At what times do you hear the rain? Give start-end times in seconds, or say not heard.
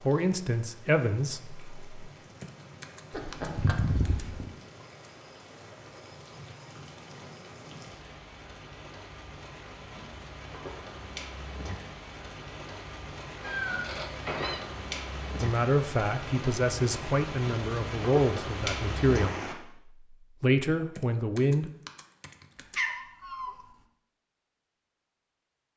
0.0-19.6.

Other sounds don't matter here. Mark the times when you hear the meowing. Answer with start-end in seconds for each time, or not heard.
3.1-4.5, 13.4-14.6, 22.6-23.6.